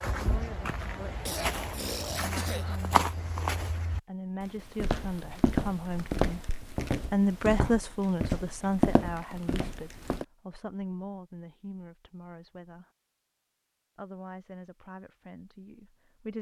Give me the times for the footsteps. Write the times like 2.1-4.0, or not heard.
0.0-10.2.